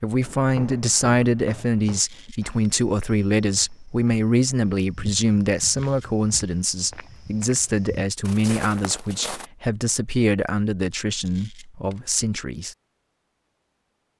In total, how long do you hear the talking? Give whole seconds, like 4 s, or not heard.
13 s.